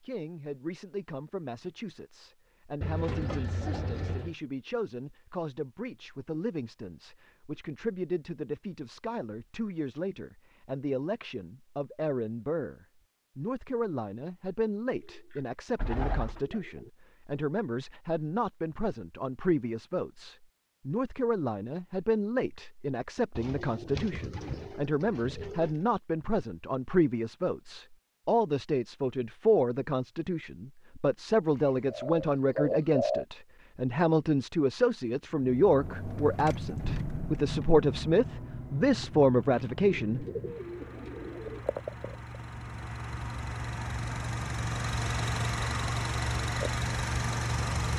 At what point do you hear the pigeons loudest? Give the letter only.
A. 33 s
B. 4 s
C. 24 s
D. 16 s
A.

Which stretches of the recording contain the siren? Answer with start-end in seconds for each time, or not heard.
not heard.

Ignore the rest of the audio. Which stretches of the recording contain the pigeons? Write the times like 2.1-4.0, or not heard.
2.8-4.3, 15.1-16.9, 23.4-25.8, 31.6-33.2, 39.8-41.6.